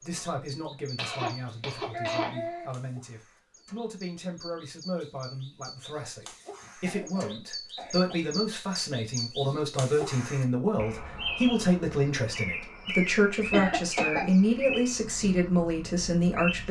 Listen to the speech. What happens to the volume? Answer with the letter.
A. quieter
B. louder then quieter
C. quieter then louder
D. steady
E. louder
E.